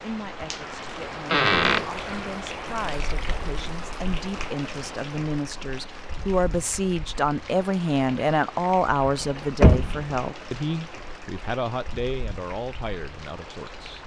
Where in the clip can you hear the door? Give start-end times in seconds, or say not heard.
1.3-1.9, 9.2-10.0.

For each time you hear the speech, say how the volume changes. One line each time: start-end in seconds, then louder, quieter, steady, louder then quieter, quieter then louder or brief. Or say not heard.
0.0-14.0 louder then quieter.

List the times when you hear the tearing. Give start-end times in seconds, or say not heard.
not heard.